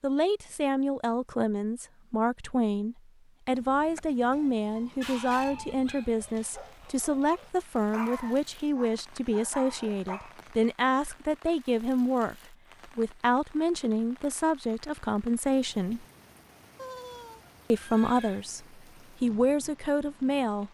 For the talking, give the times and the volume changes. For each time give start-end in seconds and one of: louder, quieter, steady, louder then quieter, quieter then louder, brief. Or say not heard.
0.0-16.1 steady
17.7-20.6 brief.